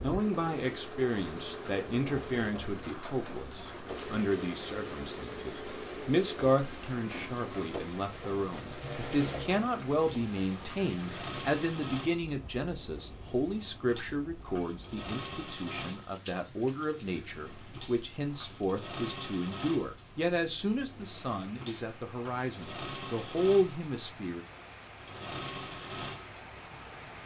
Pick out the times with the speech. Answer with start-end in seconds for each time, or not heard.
0.0-24.4.